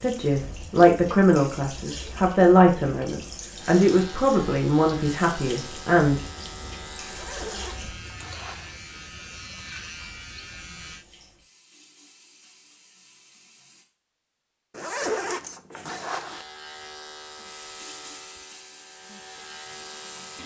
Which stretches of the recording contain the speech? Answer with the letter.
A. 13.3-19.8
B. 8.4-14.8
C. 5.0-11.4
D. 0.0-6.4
D.